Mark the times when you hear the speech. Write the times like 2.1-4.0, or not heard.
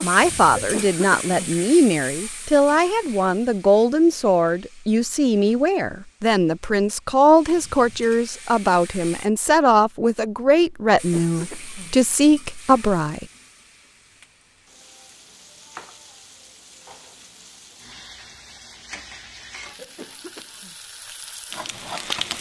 0.0-13.2.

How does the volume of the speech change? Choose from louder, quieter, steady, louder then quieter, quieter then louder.
steady.